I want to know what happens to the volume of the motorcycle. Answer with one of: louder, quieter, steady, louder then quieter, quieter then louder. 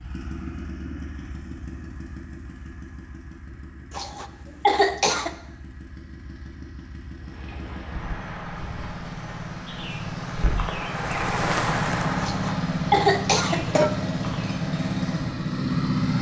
quieter then louder.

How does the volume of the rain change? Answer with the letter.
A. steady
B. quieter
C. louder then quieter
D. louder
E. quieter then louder
C.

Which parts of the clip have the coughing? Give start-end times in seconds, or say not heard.
3.9-5.3, 12.2-13.9.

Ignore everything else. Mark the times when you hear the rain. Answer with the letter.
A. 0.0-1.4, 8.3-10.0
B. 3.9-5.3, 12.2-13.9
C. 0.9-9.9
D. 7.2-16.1
D.